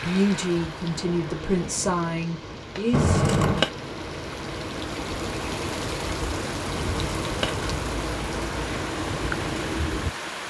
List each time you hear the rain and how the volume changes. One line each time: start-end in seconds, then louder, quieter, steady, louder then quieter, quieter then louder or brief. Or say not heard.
0.0-10.4 louder.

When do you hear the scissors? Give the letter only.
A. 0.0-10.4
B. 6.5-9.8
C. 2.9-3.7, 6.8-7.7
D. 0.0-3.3
C.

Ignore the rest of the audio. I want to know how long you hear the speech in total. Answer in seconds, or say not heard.
3 s.